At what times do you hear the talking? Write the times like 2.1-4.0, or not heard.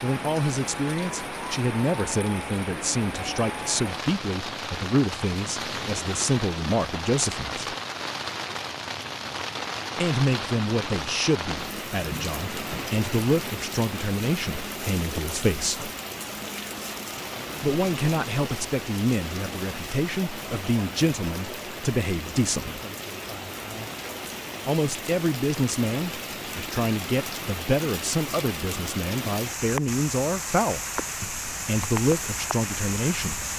0.0-7.5, 9.9-15.9, 17.6-22.8, 24.6-33.5.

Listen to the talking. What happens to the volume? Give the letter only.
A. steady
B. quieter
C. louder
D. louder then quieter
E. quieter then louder
A.